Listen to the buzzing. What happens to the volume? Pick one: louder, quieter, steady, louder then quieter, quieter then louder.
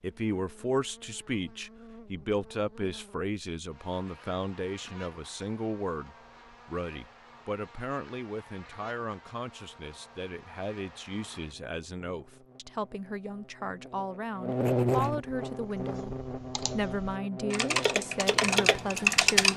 louder.